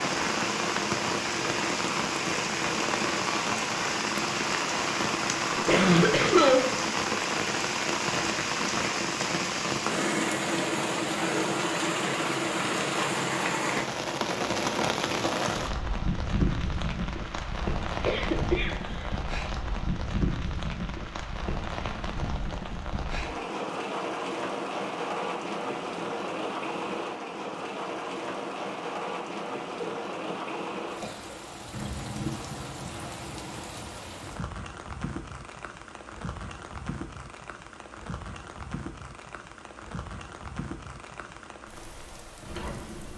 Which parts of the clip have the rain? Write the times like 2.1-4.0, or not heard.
0.0-43.1.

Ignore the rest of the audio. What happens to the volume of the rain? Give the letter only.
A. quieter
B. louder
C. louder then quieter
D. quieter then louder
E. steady
A.